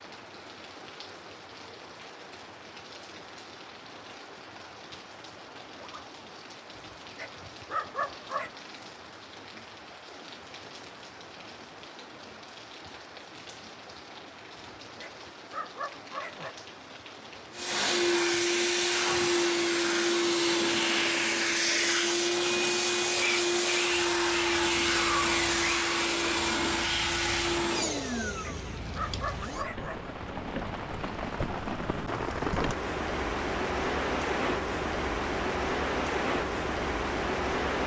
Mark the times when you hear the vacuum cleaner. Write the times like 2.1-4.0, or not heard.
17.5-29.7.